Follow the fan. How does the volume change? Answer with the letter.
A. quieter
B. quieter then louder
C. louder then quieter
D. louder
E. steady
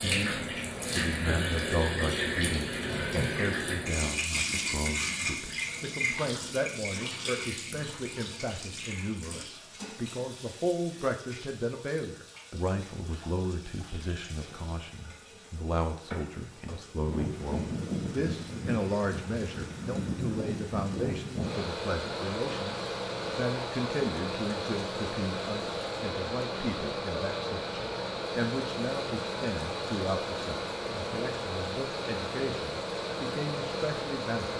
E.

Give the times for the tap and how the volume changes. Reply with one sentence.
The tap can be heard from 0.0 to 34.5 s, getting quieter.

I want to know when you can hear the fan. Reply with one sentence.
You can hear the fan from 17.1 to 34.5 s.